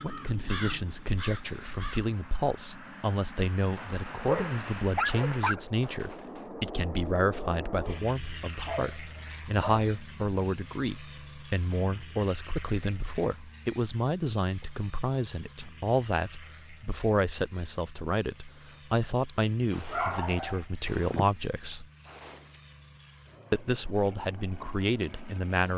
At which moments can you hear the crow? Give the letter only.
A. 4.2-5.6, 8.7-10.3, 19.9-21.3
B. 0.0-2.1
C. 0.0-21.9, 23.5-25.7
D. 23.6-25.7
B.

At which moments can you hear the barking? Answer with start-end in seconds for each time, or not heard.
4.2-5.6, 8.7-10.3, 19.9-21.3.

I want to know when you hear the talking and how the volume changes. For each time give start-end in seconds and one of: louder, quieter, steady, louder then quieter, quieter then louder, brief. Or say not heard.
0.0-21.9 steady
23.5-25.7 brief.